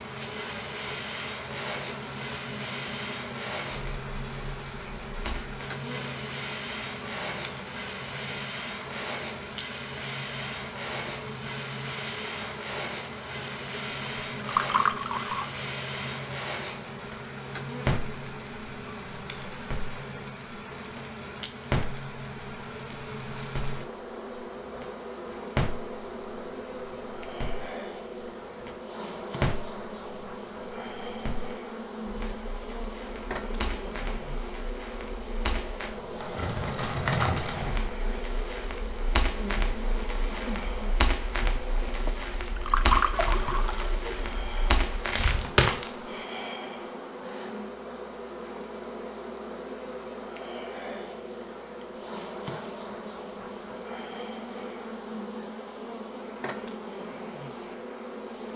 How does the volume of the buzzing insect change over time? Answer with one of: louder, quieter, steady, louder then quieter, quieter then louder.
steady.